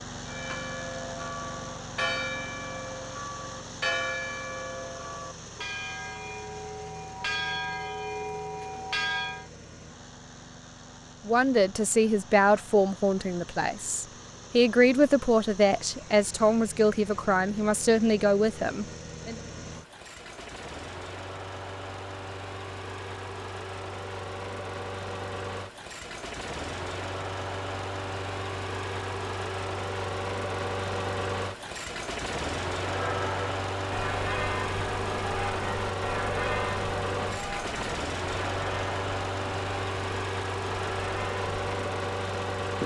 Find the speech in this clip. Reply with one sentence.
You can hear the speech from 11.2 to 19.4 s.